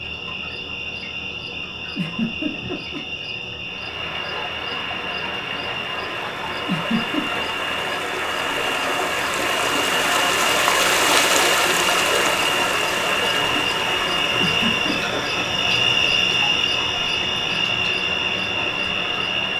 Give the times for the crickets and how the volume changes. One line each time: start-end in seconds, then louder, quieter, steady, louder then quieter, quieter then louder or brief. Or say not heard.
0.0-19.5 louder.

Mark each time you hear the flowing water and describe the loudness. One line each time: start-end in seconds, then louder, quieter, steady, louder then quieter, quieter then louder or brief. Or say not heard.
3.6-19.5 louder then quieter.